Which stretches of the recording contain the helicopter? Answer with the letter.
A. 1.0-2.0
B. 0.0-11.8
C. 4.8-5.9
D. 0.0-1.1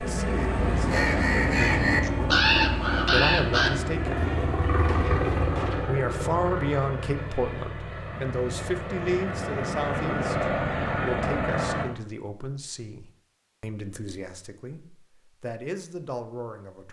B.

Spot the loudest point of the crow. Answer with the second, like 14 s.
2 s.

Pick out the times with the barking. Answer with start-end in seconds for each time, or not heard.
not heard.